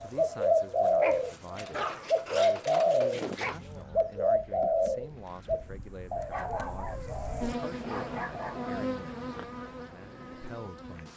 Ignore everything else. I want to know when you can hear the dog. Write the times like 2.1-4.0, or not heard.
1.0-3.6, 6.3-8.6.